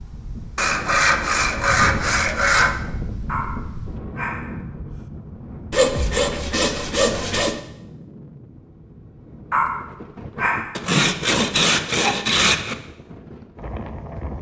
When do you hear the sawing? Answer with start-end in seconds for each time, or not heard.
0.6-2.8, 5.7-7.6, 10.8-12.8.